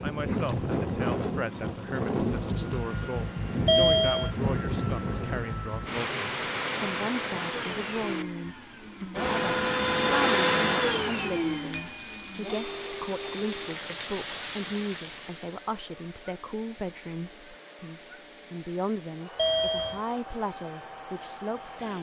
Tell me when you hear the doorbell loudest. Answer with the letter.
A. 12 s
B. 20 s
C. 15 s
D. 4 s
D.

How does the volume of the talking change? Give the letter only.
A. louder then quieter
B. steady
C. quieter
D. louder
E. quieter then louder
B.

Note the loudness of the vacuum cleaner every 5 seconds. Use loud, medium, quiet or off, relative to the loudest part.
quiet, loud, loud, quiet, quiet.